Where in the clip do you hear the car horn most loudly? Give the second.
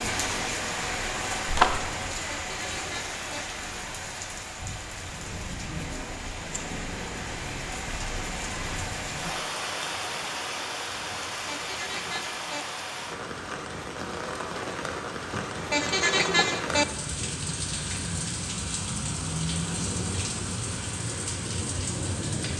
16 s.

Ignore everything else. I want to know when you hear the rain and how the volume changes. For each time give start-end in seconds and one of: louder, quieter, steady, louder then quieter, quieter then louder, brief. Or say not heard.
0.0-22.5 steady.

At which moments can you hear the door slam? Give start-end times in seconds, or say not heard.
1.4-1.9.